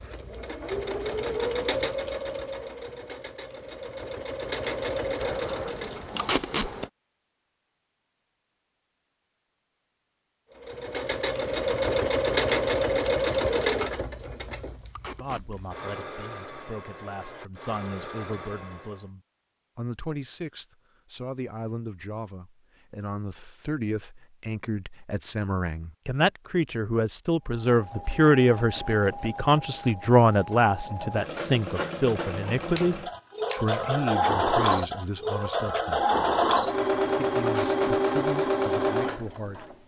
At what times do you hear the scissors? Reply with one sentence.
You can hear the scissors from 5.2 to 6.9 s and from 32.5 to 33.8 s.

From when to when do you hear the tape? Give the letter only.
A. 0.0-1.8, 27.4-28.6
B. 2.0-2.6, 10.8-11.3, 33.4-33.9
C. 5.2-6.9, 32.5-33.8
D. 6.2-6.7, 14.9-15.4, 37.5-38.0
D.